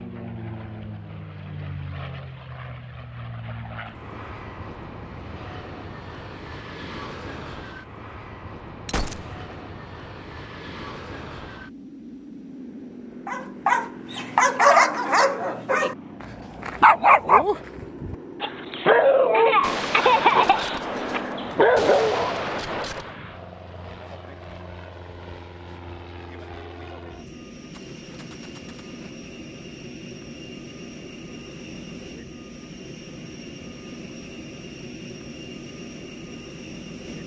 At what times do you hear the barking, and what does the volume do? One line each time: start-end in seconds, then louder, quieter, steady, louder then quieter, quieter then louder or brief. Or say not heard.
13.2-22.4 steady.